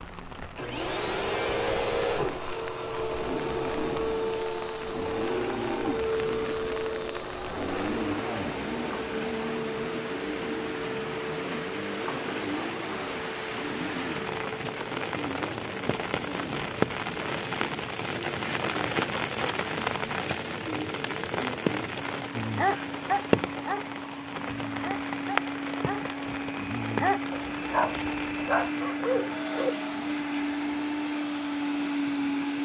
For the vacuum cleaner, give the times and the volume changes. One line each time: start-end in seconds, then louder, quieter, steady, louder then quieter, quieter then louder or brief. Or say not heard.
0.0-32.6 quieter then louder.